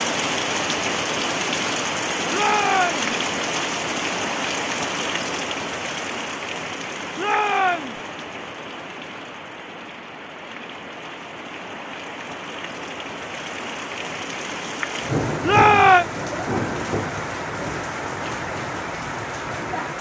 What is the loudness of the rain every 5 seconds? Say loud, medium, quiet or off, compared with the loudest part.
loud, medium, medium, loud.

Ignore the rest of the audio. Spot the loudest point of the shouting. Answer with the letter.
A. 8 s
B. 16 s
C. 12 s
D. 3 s
B.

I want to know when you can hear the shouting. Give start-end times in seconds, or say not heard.
2.3-3.0, 7.2-8.0, 15.4-16.1.